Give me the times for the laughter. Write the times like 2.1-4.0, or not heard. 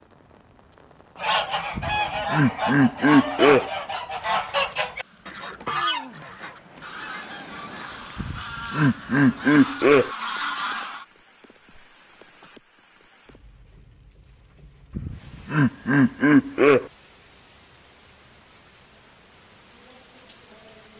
1.8-3.7, 8.2-10.1, 14.9-16.9.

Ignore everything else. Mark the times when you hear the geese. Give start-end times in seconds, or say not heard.
1.1-11.1.